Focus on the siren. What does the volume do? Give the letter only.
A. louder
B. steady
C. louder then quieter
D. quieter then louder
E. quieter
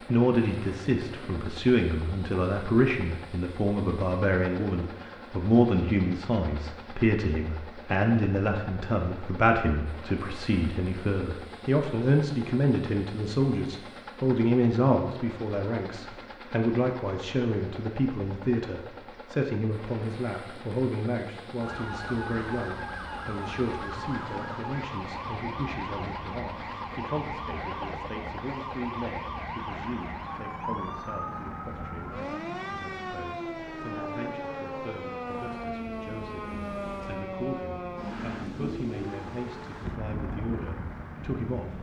B.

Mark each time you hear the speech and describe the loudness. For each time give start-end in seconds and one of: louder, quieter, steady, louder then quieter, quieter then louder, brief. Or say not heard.
0.1-41.7 quieter.